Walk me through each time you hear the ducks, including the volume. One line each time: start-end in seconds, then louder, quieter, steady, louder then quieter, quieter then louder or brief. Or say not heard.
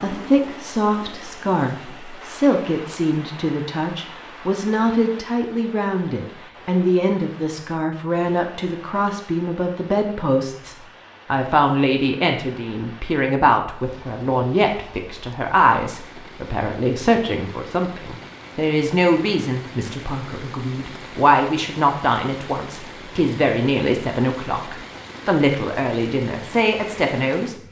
not heard.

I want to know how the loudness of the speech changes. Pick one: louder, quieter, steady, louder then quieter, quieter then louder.
steady.